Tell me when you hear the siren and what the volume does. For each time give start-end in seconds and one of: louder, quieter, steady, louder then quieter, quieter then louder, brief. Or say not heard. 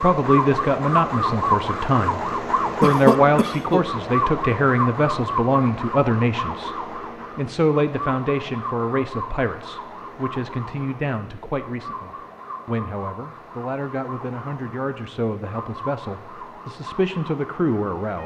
0.0-18.2 quieter.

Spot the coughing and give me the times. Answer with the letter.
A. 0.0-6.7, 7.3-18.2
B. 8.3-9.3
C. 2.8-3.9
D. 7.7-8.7
C.